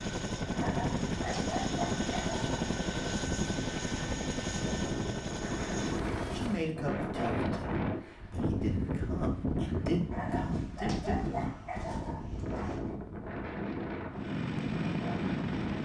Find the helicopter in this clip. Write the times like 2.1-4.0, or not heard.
0.0-6.8, 14.1-15.8.